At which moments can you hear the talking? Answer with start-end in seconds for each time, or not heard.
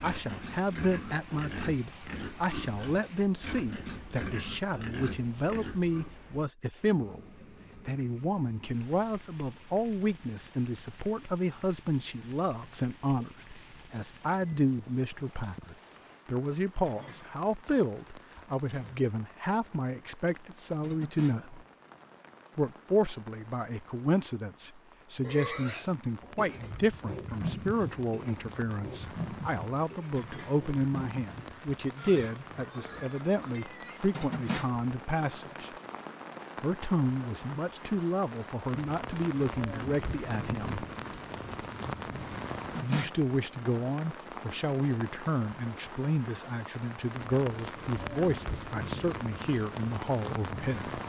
0.0-21.6, 22.6-35.7, 36.5-40.9, 42.8-51.0.